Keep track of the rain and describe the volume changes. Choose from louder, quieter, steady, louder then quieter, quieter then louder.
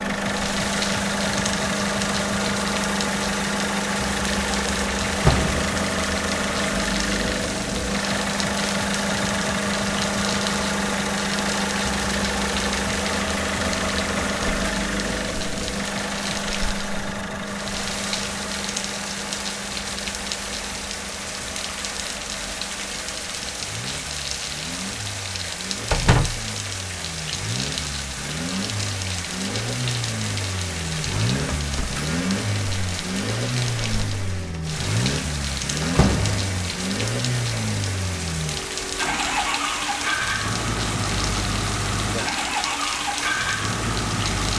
steady.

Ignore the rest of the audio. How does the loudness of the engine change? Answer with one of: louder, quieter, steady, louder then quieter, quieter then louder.
quieter then louder.